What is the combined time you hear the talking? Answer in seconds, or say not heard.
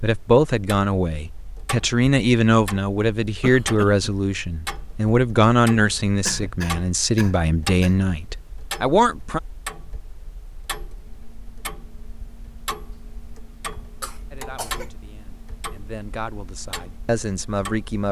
13 s.